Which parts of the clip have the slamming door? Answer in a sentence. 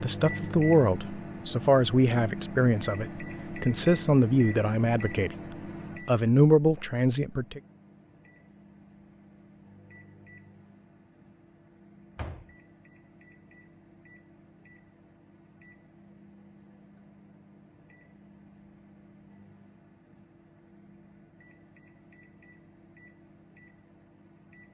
You can hear the slamming door from 12.2 to 12.6 s.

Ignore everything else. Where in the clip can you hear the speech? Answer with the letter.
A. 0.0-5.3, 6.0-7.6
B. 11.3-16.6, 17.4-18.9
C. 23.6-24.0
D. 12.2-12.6
A.